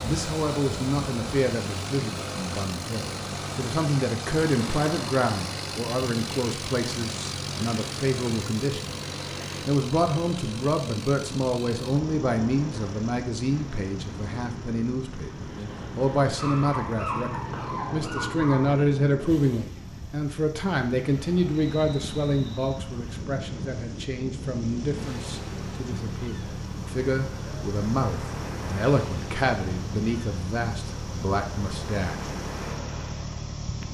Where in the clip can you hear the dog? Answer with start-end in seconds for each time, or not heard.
16.4-18.8.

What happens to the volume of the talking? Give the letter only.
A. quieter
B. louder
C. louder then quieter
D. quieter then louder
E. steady
E.